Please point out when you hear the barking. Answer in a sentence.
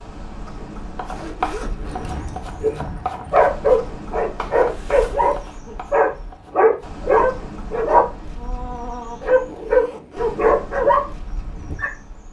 The barking can be heard from 1.8 to 11.9 s.